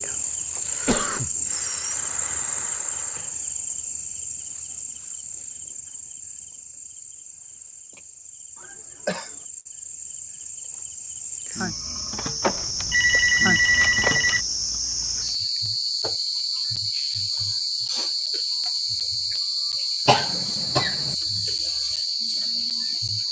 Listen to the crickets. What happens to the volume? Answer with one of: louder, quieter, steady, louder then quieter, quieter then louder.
quieter then louder.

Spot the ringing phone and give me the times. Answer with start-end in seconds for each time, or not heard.
12.4-14.4.